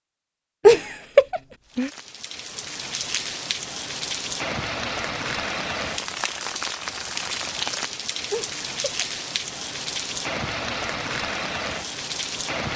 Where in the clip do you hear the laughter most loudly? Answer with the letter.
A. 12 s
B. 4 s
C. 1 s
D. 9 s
C.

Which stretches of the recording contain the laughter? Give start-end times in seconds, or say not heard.
0.7-1.9, 8.3-9.1.